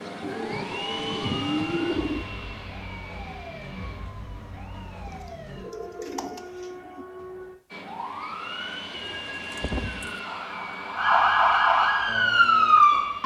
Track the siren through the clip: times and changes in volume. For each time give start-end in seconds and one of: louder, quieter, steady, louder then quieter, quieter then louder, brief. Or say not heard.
0.2-13.2 louder.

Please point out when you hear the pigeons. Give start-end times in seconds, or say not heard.
0.2-2.2, 5.0-7.0, 8.9-10.2.